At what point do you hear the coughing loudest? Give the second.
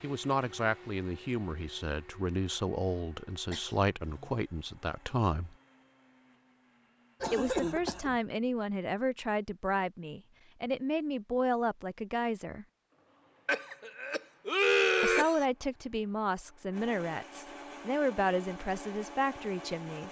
15 s.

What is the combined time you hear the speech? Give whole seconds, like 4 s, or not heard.
16 s.